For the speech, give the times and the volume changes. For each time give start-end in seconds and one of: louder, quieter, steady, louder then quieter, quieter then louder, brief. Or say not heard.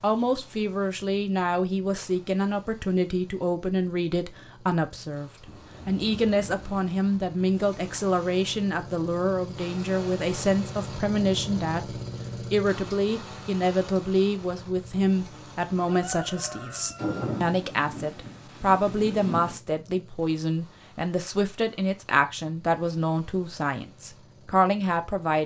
0.0-25.4 steady.